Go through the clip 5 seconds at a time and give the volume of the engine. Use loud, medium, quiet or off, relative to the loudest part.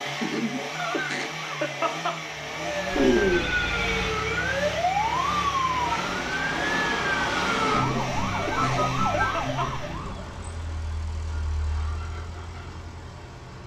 loud, loud, medium.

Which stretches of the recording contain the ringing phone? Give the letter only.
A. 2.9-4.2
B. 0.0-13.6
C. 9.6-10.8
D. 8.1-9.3
A.